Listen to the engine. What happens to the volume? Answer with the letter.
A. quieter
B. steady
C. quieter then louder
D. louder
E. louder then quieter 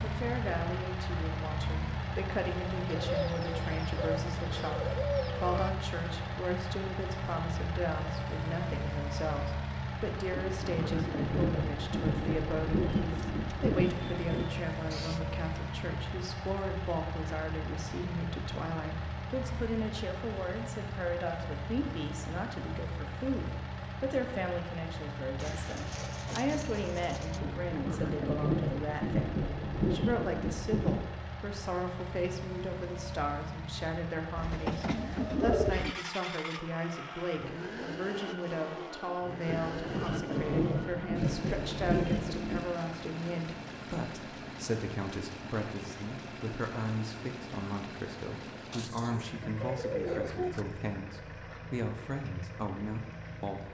A.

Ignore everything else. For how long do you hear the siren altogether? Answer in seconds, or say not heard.
not heard.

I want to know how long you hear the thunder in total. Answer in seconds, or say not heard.
11 s.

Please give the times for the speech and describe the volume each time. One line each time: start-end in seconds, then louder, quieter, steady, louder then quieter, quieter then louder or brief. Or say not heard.
0.0-53.6 steady.